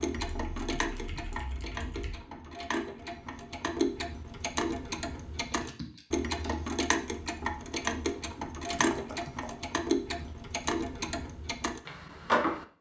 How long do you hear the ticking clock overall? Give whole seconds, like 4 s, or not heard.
13 s.